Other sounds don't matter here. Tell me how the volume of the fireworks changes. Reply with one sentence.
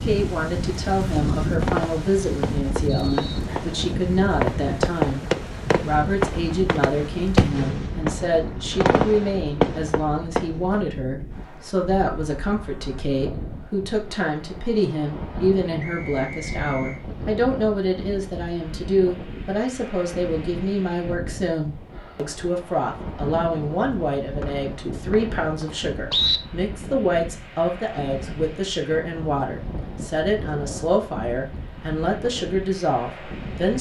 The loudness of the fireworks goes up.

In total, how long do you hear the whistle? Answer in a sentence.
You can hear the whistle for 4 seconds altogether.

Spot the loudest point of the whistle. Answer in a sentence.
The loudest moment of the whistle is at 26 seconds.